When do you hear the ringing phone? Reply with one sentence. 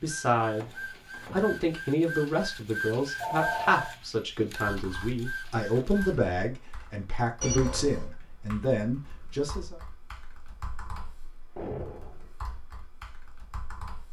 You can hear the ringing phone from 3.1 to 4.0 s and from 7.4 to 8.1 s.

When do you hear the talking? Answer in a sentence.
You can hear the talking from 0.0 to 9.8 s.